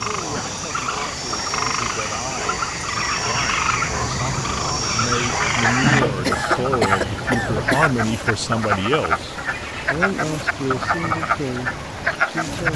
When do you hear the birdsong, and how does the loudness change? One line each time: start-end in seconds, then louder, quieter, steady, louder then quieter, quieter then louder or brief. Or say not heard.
0.0-12.7 louder then quieter.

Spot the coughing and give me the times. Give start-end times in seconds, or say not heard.
6.0-7.9.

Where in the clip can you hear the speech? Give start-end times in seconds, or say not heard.
0.1-12.7.